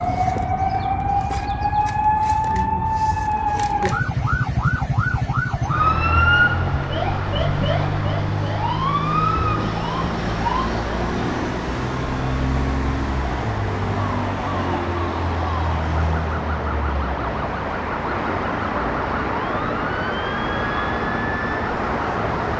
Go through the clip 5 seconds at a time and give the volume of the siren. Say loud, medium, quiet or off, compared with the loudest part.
loud, loud, medium, medium, medium.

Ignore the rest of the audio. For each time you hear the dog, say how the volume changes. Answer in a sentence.
You can't hear the dog here.